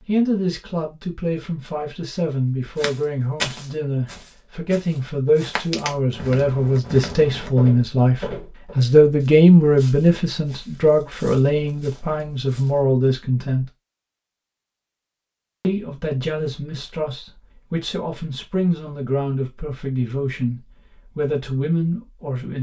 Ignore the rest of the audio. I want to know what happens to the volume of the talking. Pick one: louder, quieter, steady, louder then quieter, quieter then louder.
louder then quieter.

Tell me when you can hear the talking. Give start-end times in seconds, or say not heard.
0.1-13.7, 15.6-22.5.